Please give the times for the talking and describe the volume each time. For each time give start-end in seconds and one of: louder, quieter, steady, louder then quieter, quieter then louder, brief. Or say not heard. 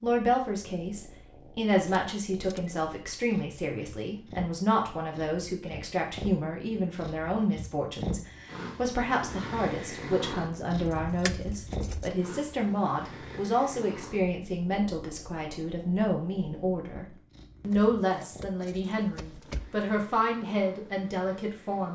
0.0-21.8 steady.